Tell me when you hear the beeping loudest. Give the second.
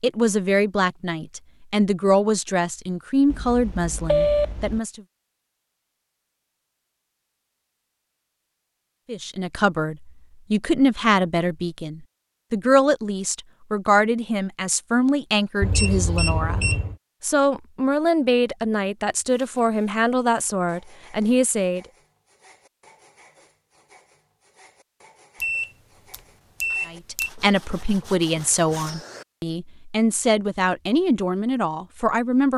4 s.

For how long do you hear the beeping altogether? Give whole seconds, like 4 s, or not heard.
5 s.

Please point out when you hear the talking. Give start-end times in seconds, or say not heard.
0.0-5.0, 9.1-21.8, 26.9-32.5.